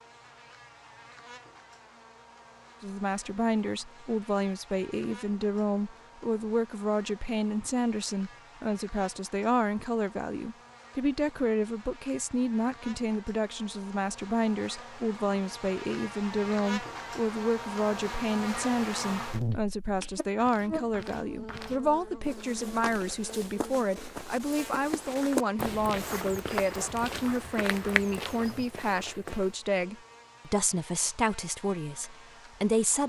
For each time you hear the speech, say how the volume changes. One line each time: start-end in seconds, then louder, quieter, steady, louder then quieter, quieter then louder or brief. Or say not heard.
2.8-33.0 steady.